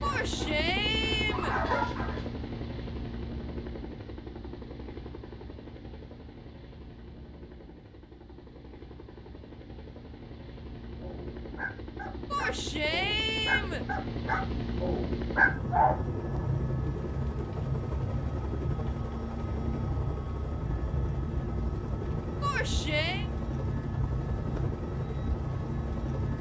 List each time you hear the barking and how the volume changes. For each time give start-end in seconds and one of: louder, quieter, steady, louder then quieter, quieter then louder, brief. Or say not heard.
0.0-2.3 brief
11.0-16.0 louder.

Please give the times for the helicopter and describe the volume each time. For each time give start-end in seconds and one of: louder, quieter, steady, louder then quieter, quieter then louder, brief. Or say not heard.
0.0-26.3 quieter then louder.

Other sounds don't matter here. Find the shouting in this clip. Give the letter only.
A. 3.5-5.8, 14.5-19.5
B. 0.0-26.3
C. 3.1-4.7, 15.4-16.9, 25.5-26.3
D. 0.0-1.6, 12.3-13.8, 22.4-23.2
D.